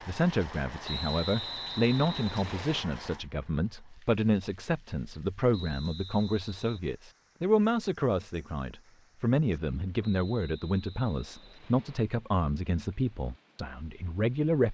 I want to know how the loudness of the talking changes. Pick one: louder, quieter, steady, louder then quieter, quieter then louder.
steady.